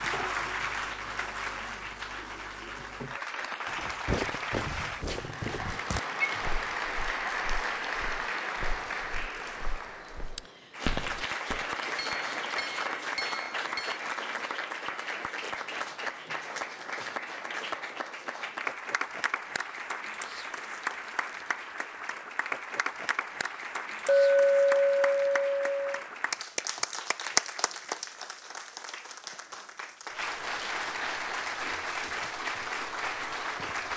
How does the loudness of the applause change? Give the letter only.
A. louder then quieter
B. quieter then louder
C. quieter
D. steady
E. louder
D.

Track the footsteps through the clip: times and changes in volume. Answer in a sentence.
You can hear the footsteps from 3.7 to 11.7 s, getting quieter then louder.